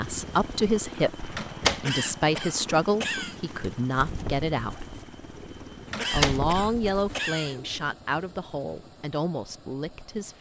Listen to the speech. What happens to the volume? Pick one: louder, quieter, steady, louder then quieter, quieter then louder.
quieter.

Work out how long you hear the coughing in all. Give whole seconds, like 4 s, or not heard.
3 s.